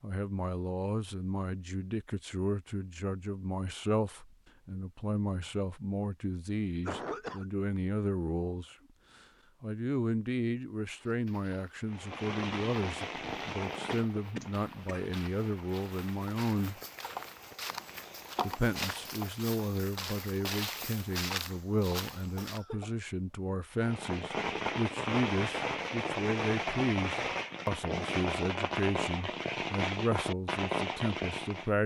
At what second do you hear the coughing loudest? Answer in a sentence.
The loudest moment of the coughing is at 7 seconds.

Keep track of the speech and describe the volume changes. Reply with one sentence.
The loudness of the speech stays about the same.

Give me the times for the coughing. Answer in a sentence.
You can hear the coughing from 6.8 to 7.5 s, from 13.8 to 15.1 s and from 22.4 to 22.9 s.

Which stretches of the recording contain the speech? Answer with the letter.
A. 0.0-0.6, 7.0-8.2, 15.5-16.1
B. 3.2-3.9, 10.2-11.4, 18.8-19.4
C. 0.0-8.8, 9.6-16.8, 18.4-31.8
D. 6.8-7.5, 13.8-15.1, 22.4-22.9
C.